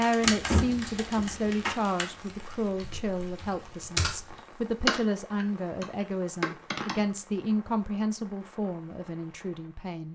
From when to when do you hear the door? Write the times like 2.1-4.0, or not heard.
0.2-1.8.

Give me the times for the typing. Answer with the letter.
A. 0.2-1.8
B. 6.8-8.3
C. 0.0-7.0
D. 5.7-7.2
C.